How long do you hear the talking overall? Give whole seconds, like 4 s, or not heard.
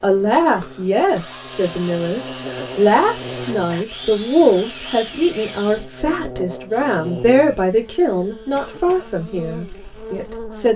11 s.